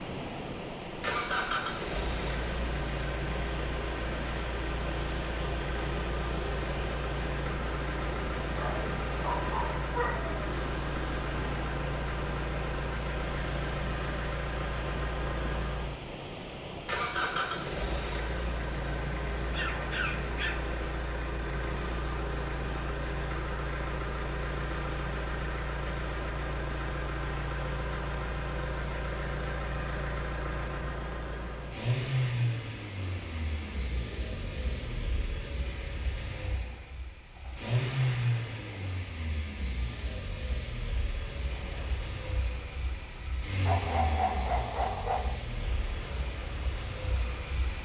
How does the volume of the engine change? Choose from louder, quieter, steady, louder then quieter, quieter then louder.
steady.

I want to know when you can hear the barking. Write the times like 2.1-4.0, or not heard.
8.6-10.4, 19.4-20.6, 43.6-45.4.